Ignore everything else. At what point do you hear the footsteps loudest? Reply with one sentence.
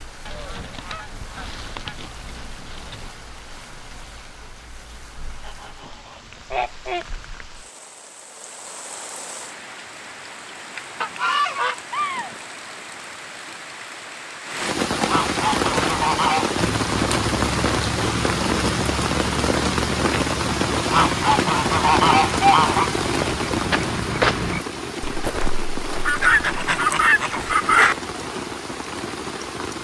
The loudest moment of the footsteps is at 24 seconds.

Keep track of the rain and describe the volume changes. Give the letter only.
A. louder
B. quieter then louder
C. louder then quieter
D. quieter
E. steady
C.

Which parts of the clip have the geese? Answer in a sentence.
You can hear the geese from 0.2 to 3.1 s, from 5.5 to 7.0 s, from 11.0 to 12.4 s, from 15.1 to 16.6 s, from 20.9 to 22.9 s and from 26.1 to 27.9 s.